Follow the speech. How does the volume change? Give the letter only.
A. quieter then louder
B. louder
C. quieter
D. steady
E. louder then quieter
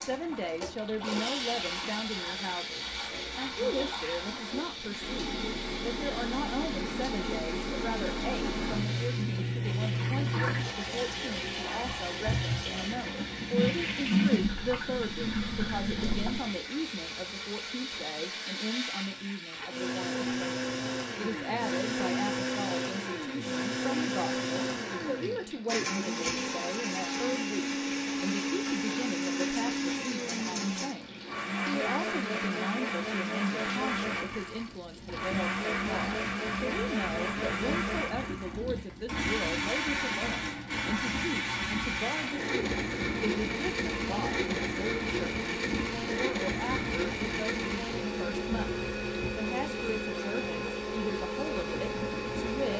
D.